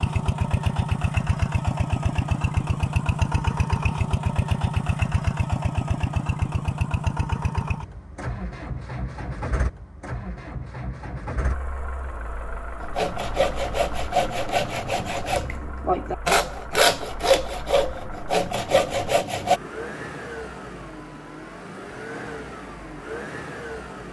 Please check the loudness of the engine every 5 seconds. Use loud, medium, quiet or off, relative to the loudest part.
loud, loud, medium, quiet, medium.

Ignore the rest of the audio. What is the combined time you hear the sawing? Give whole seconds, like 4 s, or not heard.
7 s.